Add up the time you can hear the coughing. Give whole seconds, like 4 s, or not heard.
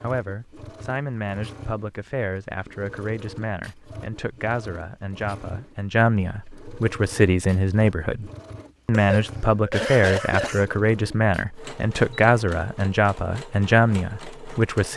2 s.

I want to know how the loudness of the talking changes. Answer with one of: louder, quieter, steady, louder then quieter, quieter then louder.
louder.